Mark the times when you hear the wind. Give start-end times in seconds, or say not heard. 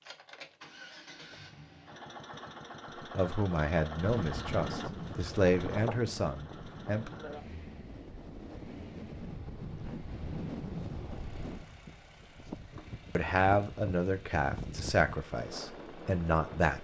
4.0-16.8.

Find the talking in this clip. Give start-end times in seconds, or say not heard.
3.1-7.1, 13.2-16.8.